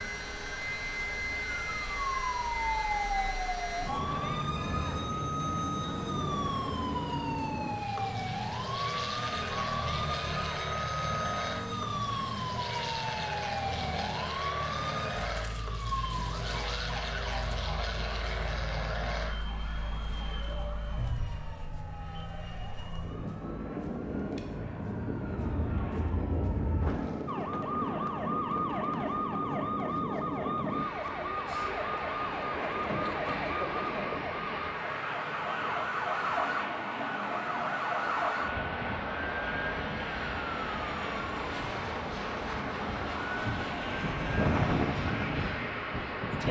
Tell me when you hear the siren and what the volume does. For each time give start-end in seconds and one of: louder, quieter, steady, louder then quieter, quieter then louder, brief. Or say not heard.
0.0-46.4 quieter then louder.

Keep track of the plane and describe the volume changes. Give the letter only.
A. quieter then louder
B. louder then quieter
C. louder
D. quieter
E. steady
E.